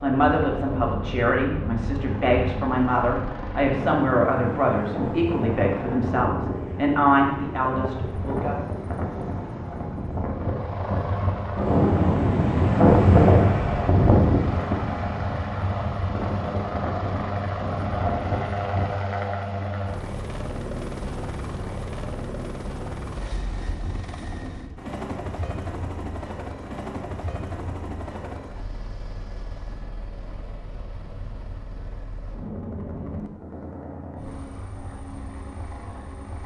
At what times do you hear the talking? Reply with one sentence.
The talking can be heard from 0.0 to 8.6 s.